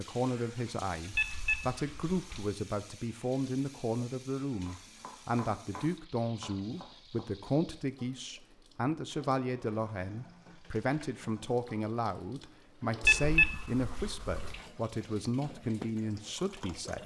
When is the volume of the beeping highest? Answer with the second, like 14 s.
13 s.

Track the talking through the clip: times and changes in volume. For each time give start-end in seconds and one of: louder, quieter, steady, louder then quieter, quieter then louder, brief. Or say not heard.
0.0-17.0 steady.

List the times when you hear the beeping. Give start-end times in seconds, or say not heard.
1.1-2.4, 13.0-14.6.